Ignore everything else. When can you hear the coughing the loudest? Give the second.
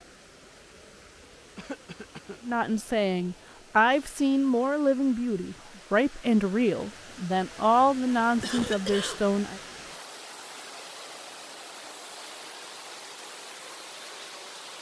9 s.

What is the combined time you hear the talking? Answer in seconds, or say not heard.
7 s.